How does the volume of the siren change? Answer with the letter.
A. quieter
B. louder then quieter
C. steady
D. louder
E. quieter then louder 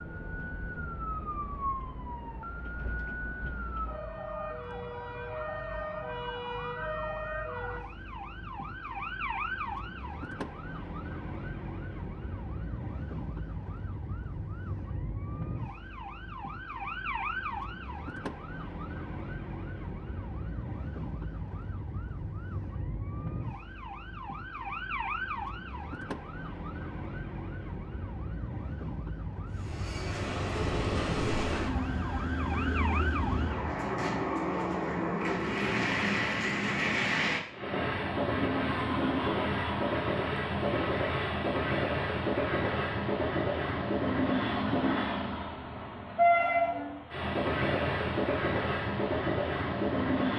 C.